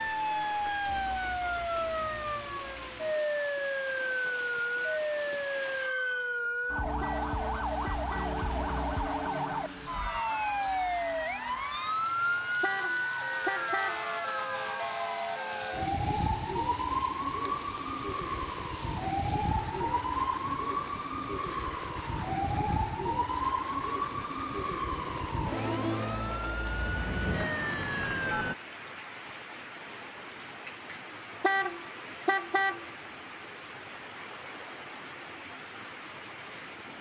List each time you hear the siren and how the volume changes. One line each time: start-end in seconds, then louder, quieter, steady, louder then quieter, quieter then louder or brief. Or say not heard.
0.0-28.6 steady.